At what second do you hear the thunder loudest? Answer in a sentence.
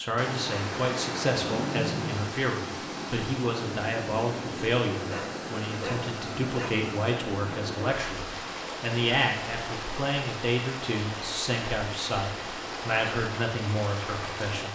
The volume of the thunder peaks at 2 seconds.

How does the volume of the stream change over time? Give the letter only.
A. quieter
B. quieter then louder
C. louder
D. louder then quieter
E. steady
E.